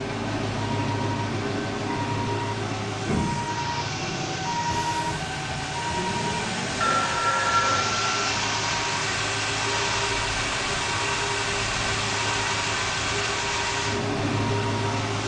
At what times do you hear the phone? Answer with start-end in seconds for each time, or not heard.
6.8-8.3.